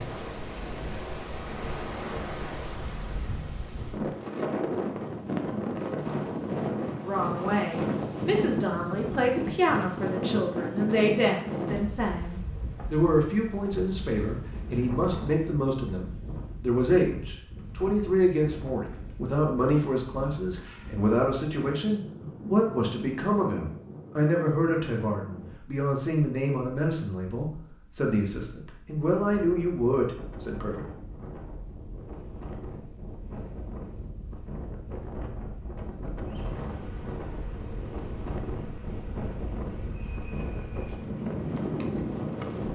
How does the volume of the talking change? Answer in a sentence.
The volume of the talking stays about the same.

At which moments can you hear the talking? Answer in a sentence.
The talking can be heard from 7.0 to 30.9 s.